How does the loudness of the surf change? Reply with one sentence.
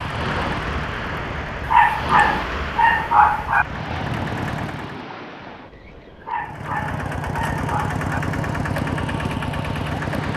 The loudness of the surf goes down, then up.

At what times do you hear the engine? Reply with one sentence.
You can hear the engine from 0.0 to 5.0 s and from 6.3 to 10.3 s.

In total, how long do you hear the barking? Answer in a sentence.
You can hear the barking for 4 seconds altogether.